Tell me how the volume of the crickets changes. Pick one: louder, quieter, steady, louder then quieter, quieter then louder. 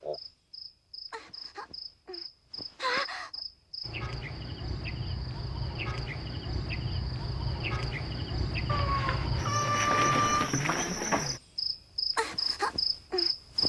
louder.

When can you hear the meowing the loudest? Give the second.
10 s.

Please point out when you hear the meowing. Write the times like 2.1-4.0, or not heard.
8.7-10.5.